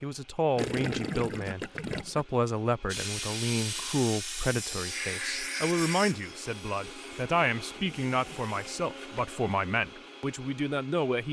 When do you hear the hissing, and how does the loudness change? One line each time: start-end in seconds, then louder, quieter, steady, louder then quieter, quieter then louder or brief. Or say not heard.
2.9-8.7 quieter.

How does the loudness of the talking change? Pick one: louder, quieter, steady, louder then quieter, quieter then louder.
steady.